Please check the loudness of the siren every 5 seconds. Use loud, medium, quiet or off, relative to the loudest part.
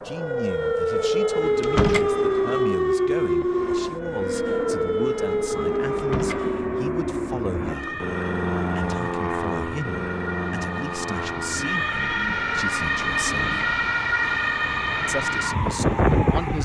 loud, medium, loud, loud.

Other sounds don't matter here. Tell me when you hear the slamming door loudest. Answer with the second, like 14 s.
2 s.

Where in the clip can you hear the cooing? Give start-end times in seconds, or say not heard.
not heard.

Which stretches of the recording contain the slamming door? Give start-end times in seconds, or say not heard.
1.6-2.1, 6.0-6.5, 13.2-13.8.